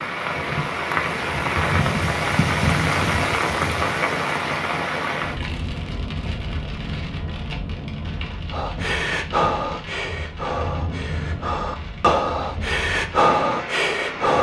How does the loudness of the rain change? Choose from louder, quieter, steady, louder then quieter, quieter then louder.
quieter.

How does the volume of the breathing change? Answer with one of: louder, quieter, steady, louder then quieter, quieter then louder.
quieter then louder.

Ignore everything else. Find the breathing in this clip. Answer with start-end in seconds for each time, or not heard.
8.5-14.3.